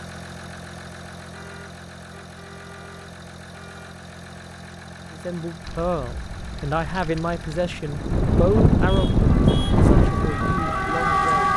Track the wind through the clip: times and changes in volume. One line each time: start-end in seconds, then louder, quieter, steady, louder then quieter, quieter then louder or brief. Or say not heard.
5.6-11.5 louder then quieter.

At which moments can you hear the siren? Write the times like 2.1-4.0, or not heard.
9.2-11.5.